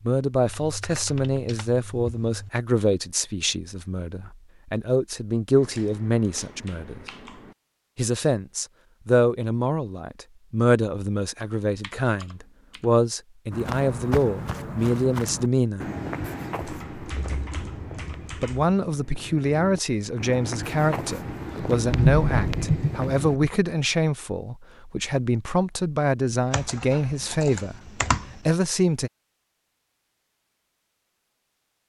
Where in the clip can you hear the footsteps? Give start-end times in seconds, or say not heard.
13.5-23.4.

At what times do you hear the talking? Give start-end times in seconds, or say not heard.
0.0-7.0, 8.0-15.8, 18.4-29.1.